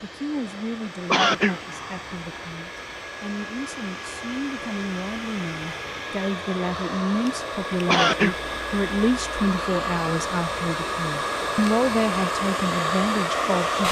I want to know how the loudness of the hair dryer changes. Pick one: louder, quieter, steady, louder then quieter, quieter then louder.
louder.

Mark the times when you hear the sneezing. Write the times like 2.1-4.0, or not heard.
1.1-1.6, 7.8-8.4.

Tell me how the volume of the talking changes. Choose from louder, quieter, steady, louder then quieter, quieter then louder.
louder.